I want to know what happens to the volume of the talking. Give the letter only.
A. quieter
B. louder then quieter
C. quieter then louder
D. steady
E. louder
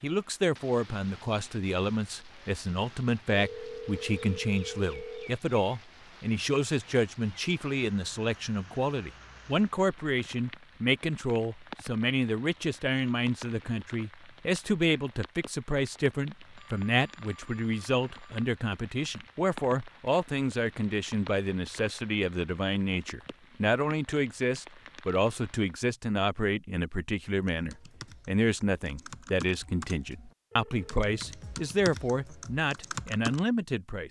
D.